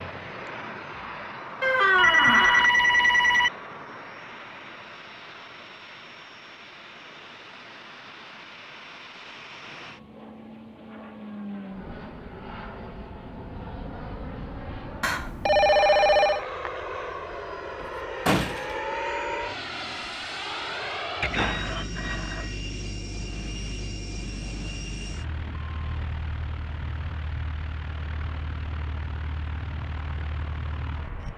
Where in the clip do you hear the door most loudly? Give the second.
2 s.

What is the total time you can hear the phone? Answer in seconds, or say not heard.
4 s.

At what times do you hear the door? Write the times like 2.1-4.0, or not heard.
1.6-2.7, 17.8-18.6.